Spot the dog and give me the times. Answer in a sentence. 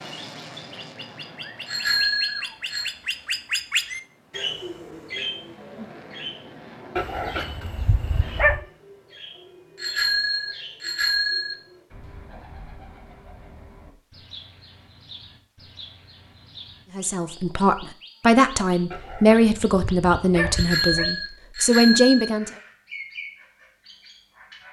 You can hear the dog from 7.0 to 8.7 s and from 18.9 to 21.1 s.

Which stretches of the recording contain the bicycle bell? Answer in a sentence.
You can hear the bicycle bell from 1.6 to 2.9 s, from 9.8 to 11.6 s and from 20.5 to 22.3 s.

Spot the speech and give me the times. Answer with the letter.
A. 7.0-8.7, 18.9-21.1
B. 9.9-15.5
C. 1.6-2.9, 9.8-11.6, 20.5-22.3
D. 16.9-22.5
D.